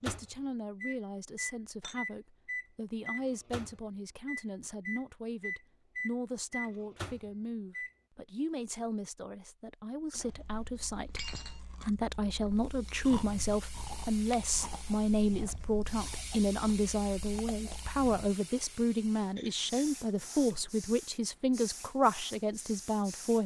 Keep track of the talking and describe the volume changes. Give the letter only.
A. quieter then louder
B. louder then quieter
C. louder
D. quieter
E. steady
C.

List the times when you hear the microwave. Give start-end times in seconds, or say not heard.
0.0-7.9.